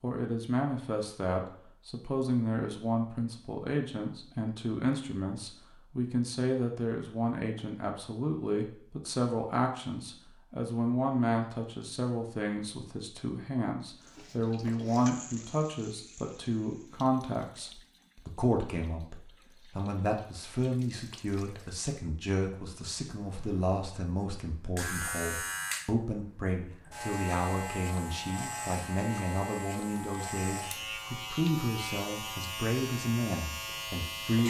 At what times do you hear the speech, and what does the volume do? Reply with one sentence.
You can hear the speech from 0.0 to 34.4 s, at a steady volume.